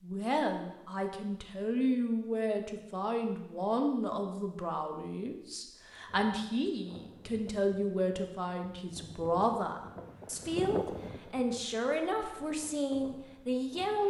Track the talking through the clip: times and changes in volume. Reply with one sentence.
You can hear the talking from 0.0 to 14.0 s, at a steady volume.